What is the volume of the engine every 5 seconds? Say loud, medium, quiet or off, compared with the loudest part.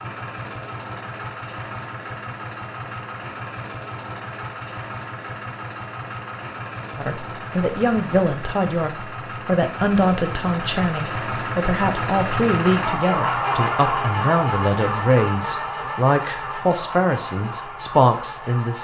medium, medium, loud, medium.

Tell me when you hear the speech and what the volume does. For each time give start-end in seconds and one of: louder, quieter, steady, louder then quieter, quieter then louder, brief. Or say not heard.
7.0-18.7 steady.